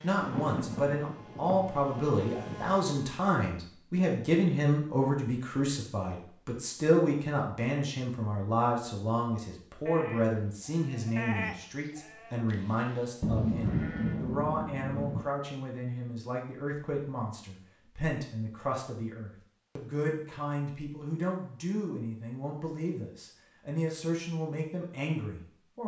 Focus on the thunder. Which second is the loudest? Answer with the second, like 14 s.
14 s.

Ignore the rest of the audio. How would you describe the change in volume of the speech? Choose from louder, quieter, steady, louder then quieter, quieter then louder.
quieter.